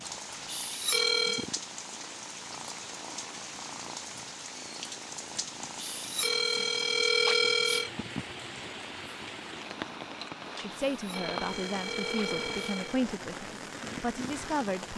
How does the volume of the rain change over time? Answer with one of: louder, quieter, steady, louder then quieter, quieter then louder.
steady.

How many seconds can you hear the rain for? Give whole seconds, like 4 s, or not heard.
15 s.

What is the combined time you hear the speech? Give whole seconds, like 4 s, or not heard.
4 s.